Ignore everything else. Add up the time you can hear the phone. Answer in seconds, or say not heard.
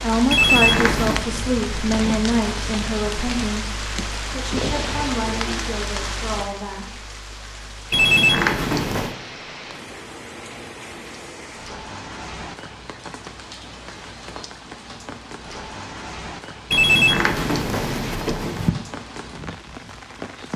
4 s.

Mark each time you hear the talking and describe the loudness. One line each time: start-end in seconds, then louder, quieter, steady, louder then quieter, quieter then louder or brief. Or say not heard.
0.0-7.0 quieter.